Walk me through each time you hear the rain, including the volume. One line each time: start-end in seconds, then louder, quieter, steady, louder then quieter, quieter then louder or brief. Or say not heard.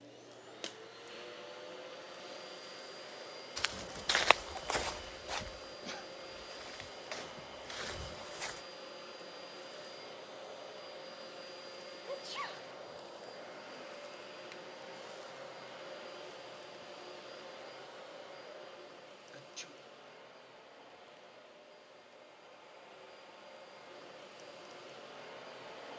not heard.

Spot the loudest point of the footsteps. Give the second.
4 s.